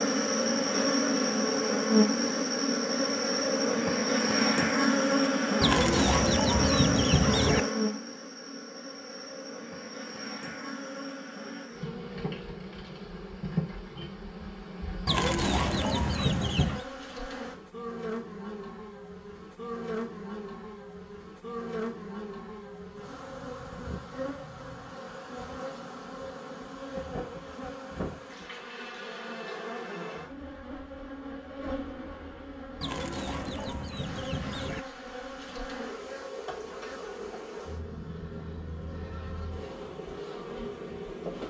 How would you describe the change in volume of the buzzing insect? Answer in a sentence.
The loudness of the buzzing insect goes down.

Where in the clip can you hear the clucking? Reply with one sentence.
The clucking can be heard from 5.6 to 7.6 s, from 15.1 to 16.9 s and from 32.8 to 34.8 s.